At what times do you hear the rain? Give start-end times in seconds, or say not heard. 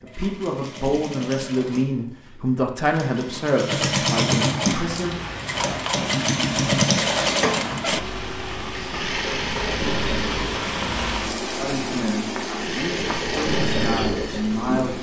4.7-14.9.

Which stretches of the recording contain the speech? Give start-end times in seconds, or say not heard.
0.0-5.2, 11.6-14.9.